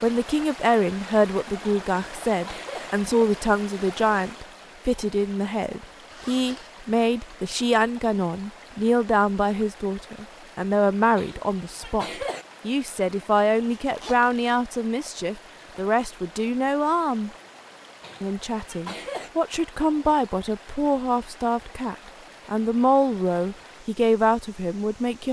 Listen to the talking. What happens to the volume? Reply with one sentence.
The volume of the talking stays about the same.